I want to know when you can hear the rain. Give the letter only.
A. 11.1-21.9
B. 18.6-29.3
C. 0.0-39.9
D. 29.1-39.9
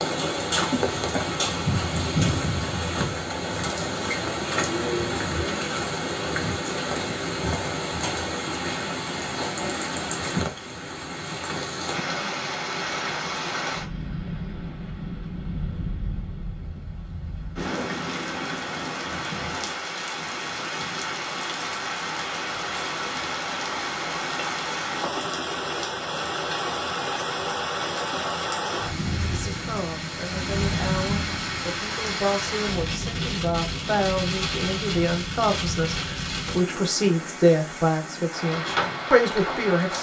C.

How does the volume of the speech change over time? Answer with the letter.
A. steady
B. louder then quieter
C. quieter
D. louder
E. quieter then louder
D.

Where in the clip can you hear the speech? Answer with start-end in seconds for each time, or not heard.
29.1-39.9.